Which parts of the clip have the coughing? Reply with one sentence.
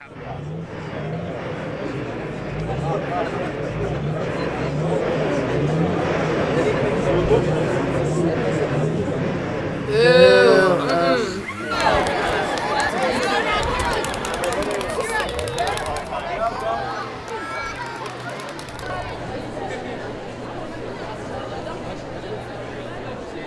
The coughing can't be heard in this clip.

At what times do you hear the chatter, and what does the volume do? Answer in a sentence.
You can hear the chatter from 0.0 to 23.4 s, getting louder then quieter.